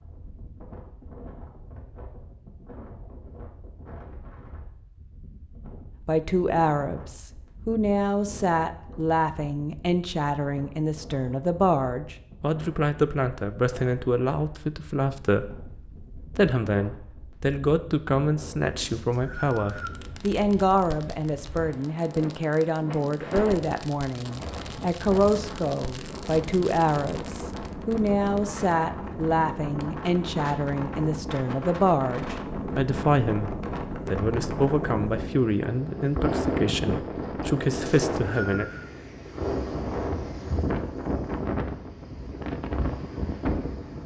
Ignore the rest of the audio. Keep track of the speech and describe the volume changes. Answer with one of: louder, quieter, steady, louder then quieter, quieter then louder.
steady.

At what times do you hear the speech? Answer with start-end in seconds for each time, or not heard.
6.0-38.7.